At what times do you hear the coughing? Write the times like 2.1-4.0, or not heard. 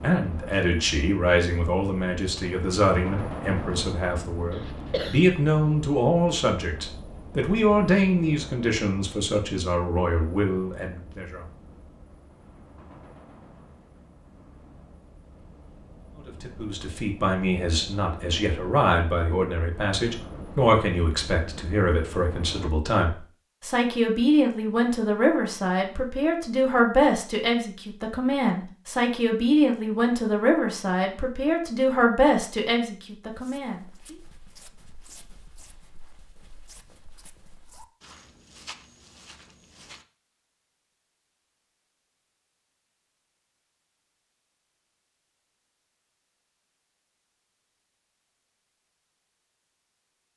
4.5-5.2.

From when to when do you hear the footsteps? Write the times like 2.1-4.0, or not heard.
33.3-40.0.